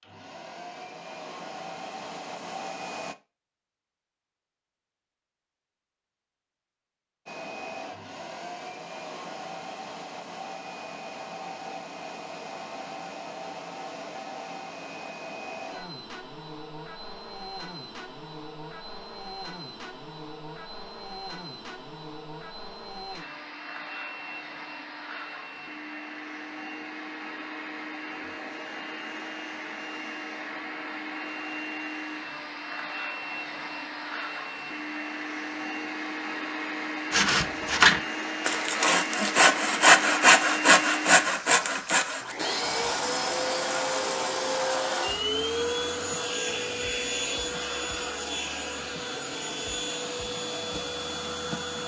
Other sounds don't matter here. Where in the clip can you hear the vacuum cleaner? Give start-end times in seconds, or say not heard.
0.0-3.1, 7.2-51.8.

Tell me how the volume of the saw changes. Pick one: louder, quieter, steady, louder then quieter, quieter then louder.
quieter.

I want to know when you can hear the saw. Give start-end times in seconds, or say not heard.
37.1-45.2.